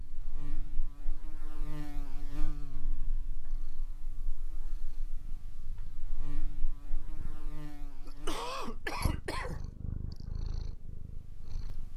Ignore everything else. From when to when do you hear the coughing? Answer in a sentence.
The coughing can be heard from 8.1 to 9.6 s.